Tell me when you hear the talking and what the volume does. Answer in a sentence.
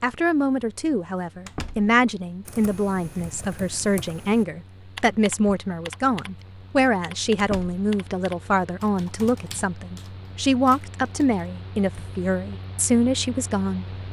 The talking can be heard from 0.0 to 13.8 s, at a steady volume.